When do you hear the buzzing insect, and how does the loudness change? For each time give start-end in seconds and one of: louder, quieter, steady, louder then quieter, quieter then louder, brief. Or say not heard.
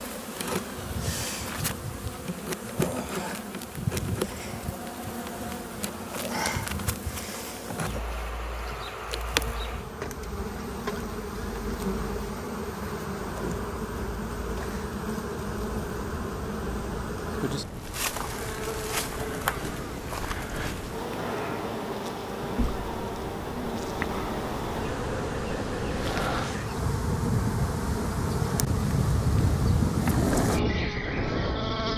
0.0-31.9 steady.